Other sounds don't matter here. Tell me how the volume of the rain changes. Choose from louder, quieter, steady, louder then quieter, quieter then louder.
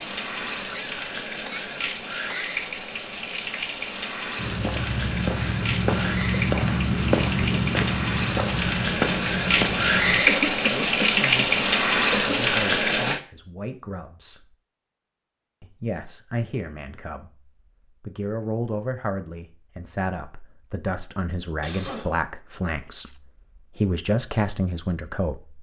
louder.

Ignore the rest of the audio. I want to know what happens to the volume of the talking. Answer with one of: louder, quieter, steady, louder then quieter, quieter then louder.
louder.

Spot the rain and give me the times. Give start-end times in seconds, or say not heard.
0.0-13.2.